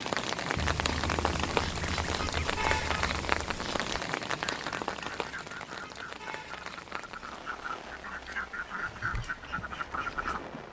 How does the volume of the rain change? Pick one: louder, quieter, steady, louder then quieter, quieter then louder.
quieter.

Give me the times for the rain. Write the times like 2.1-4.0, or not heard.
0.0-10.6.